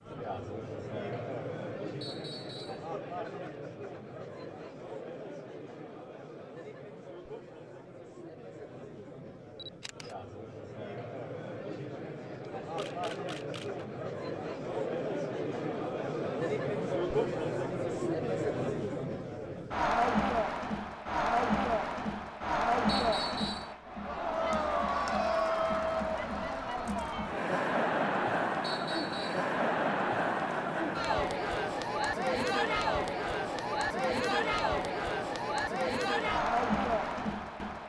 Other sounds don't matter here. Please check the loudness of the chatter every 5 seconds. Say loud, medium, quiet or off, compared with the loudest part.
medium, quiet, medium, loud, loud, loud, loud, loud.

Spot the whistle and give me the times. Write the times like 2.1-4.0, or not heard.
2.0-2.9, 22.9-23.7, 28.6-29.4.